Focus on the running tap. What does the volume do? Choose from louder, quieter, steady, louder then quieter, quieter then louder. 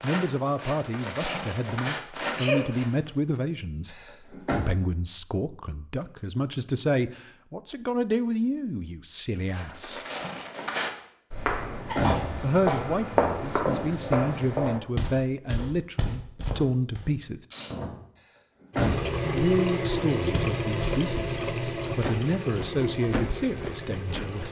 quieter.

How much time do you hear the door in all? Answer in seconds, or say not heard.
3 s.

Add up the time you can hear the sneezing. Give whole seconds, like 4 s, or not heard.
2 s.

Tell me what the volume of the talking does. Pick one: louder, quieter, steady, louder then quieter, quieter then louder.
steady.